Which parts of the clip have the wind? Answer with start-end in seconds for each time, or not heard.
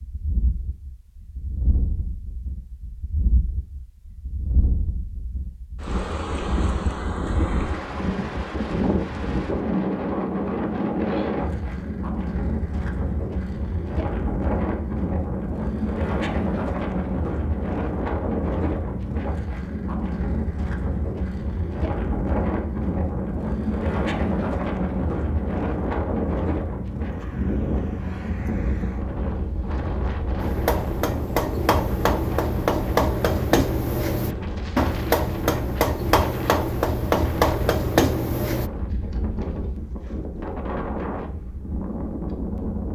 0.0-42.8.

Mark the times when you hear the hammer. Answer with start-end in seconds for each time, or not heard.
30.4-38.7.